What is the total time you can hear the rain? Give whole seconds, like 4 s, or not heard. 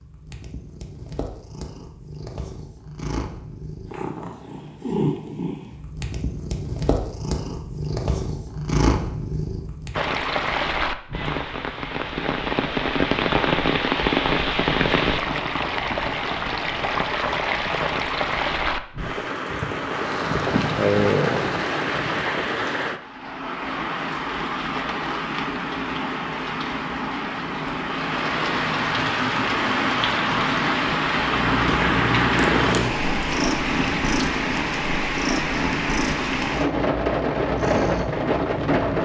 29 s.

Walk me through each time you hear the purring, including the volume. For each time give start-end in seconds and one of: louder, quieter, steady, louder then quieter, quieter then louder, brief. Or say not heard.
0.0-10.1 louder
31.2-38.9 quieter.